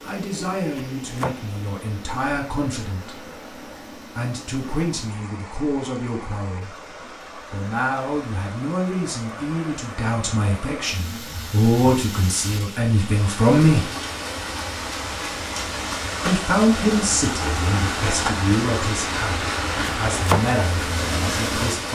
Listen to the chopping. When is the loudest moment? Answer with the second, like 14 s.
20 s.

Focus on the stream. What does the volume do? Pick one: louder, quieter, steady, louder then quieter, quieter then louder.
louder.